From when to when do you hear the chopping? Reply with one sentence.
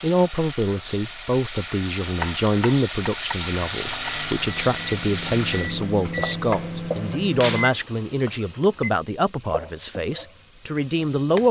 You can hear the chopping from 2.1 to 4.1 s and from 5.8 to 6.8 s.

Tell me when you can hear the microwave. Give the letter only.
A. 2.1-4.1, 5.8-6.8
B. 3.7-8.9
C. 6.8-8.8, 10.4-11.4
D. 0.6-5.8
B.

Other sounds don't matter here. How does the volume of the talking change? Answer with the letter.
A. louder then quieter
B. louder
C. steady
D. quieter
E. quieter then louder
C.